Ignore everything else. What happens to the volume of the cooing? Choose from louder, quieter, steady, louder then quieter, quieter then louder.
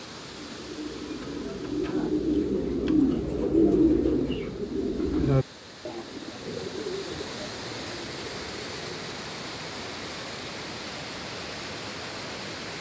louder then quieter.